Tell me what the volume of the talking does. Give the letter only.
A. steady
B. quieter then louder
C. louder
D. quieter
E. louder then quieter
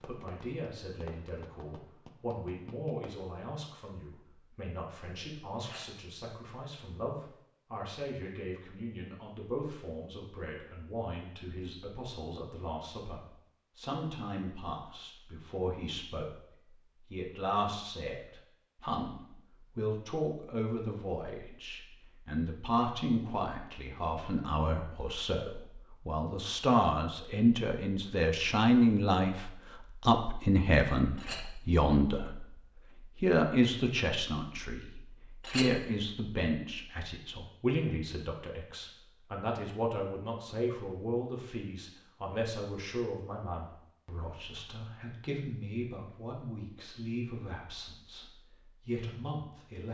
E.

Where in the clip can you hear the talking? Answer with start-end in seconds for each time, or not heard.
0.1-49.8.